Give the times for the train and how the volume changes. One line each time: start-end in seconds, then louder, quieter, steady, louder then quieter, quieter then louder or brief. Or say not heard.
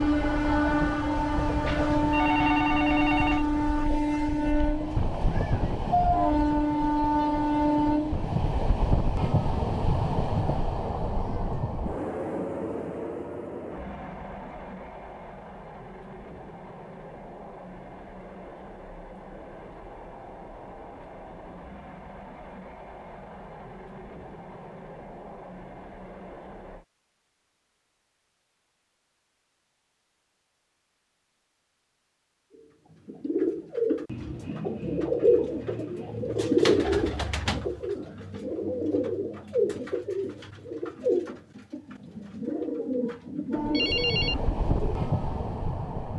0.0-26.9 quieter
43.5-46.1 brief.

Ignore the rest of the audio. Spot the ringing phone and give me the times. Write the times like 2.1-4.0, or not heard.
1.6-3.5, 43.7-44.4.